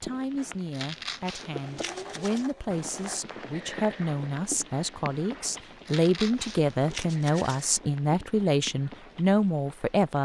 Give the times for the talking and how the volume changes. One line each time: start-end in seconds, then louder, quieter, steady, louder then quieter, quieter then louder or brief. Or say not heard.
0.0-10.2 louder.